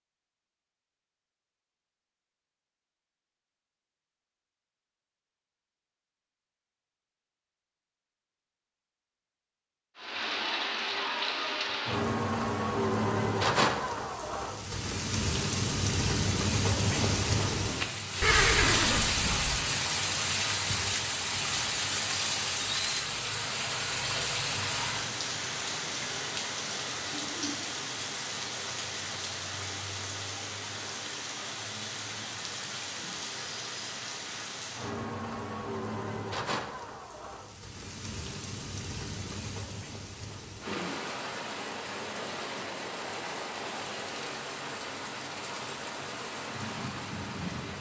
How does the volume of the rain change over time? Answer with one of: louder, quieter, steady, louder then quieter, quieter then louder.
quieter.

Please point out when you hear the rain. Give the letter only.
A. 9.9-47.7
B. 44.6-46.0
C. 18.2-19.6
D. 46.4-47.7
A.